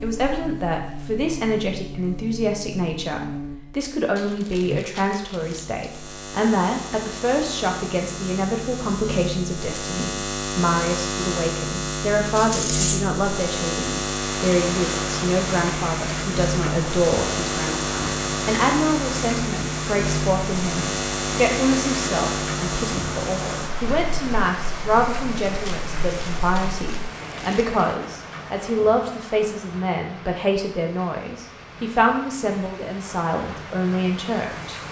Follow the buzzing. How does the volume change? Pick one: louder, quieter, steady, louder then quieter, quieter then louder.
louder.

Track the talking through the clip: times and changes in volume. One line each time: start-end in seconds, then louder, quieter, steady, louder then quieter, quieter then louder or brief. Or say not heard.
0.0-34.8 steady.